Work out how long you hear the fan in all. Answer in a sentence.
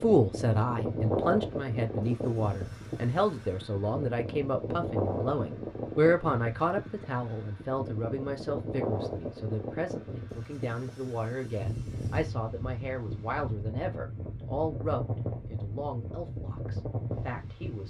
The fan can be heard for 18 seconds in total.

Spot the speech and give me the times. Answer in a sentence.
You can hear the speech from 0.0 to 17.8 s.